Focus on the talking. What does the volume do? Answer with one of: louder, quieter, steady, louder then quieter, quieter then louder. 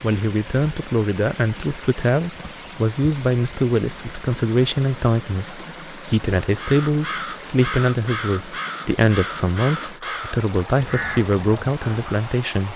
steady.